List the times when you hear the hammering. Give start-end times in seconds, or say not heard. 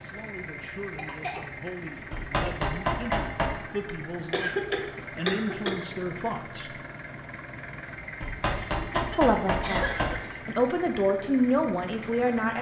2.1-3.5, 8.2-10.2.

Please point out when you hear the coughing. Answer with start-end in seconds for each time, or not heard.
0.9-1.4, 4.3-5.8, 8.7-10.4.